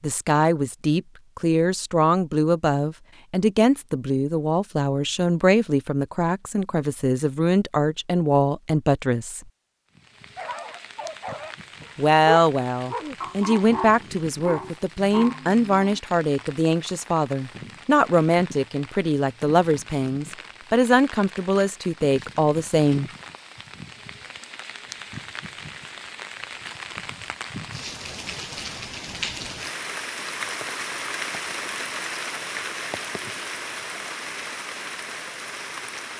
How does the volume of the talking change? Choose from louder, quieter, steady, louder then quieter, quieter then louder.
steady.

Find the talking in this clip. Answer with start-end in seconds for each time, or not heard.
0.0-9.4, 11.9-23.1.